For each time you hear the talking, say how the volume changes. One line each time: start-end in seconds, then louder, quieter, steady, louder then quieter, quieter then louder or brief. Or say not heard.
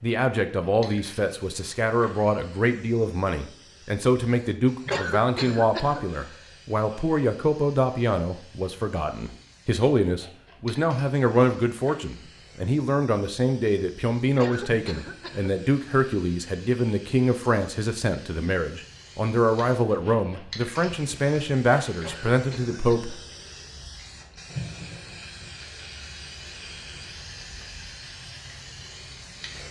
0.0-23.1 steady.